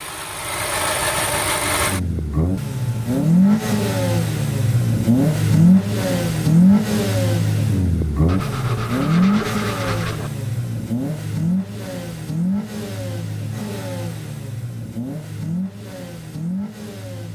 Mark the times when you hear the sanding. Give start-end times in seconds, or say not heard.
8.2-10.3.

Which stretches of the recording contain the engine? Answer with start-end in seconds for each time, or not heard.
0.0-17.2.